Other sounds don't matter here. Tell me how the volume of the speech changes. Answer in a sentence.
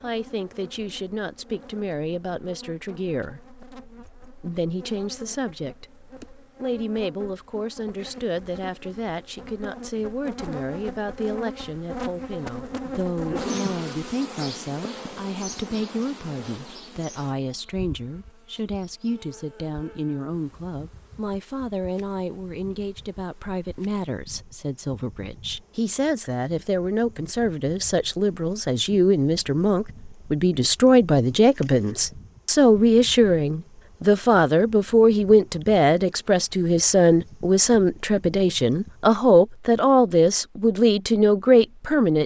The volume of the speech goes up.